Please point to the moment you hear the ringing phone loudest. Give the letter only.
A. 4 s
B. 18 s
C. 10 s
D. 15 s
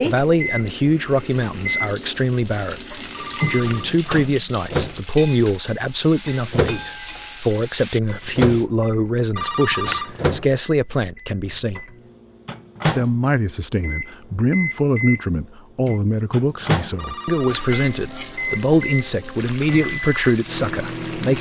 C.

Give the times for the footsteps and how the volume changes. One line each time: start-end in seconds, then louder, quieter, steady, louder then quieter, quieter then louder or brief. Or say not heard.
not heard.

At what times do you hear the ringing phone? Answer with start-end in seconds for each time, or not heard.
3.1-4.0, 9.3-10.2, 16.9-17.8.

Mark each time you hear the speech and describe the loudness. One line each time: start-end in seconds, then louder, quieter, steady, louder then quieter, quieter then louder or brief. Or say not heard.
0.0-11.8 steady
12.9-21.3 steady.